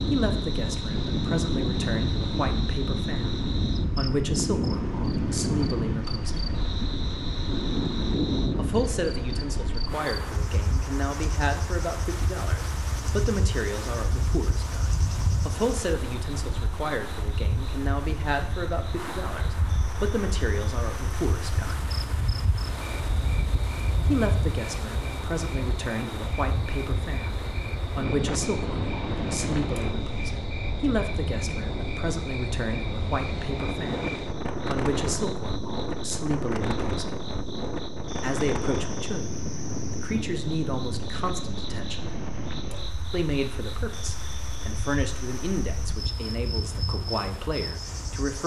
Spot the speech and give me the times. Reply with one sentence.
You can hear the speech from 0.1 to 6.5 s, from 8.6 to 21.9 s, from 24.0 to 37.1 s, from 38.2 to 42.1 s and from 43.1 to 48.4 s.